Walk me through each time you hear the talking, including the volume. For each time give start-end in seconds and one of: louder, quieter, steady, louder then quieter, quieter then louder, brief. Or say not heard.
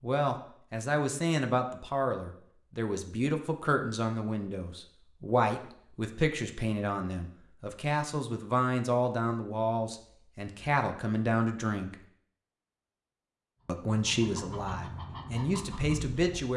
0.0-11.9 steady
13.7-16.5 brief.